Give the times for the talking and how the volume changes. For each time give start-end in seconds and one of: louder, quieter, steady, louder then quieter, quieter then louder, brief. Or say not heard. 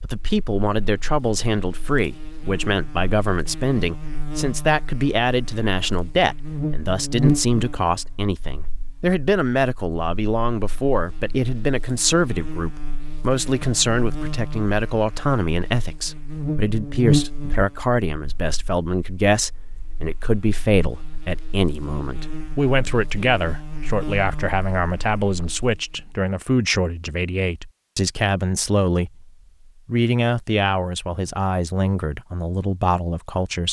0.0-33.6 steady.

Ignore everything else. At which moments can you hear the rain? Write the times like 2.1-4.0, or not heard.
not heard.